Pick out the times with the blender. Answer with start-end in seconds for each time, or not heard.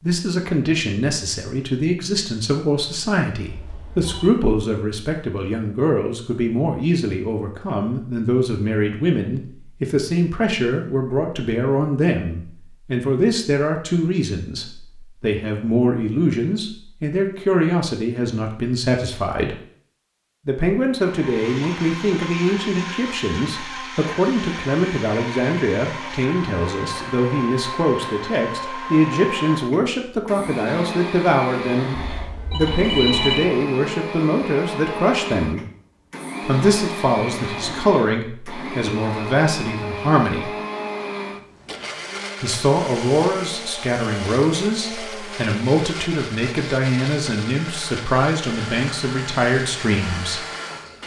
20.9-51.0.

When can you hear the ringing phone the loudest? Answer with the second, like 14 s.
33 s.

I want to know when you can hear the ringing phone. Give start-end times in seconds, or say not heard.
3.5-4.3, 32.0-33.5.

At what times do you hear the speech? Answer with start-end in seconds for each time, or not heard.
0.0-19.6, 20.4-35.6, 36.5-40.5, 42.4-50.4.